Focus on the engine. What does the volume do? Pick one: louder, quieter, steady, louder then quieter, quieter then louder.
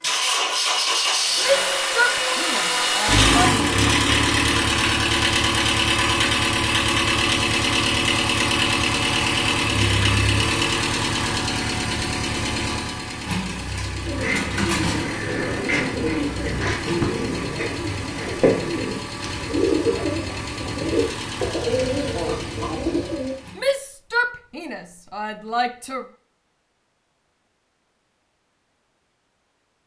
quieter.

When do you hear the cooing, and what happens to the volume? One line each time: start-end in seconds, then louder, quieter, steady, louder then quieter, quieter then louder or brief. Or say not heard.
13.9-23.4 steady.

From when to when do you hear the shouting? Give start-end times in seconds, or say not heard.
1.4-3.3, 23.6-26.1.